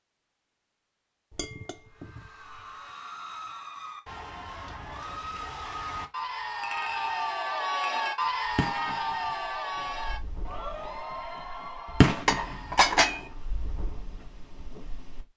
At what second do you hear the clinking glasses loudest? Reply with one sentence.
The volume of the clinking glasses peaks at 13 seconds.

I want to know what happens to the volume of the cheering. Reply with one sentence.
The volume of the cheering goes up, then down.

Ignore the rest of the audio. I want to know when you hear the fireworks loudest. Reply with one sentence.
The volume of the fireworks peaks at 12 seconds.